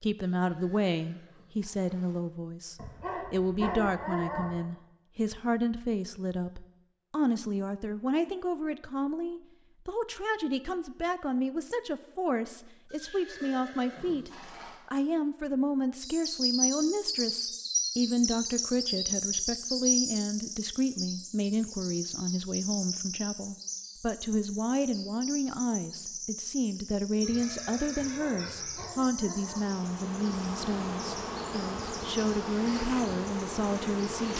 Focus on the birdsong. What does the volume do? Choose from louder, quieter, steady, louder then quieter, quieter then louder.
quieter.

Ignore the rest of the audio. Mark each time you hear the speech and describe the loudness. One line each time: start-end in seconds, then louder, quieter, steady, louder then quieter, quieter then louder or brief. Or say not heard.
0.0-34.3 steady.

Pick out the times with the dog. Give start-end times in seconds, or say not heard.
2.8-4.6, 28.1-29.6.